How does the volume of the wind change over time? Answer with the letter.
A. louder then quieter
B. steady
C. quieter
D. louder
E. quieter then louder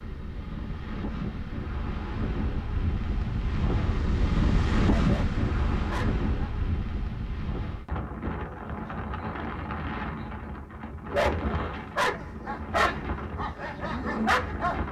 A.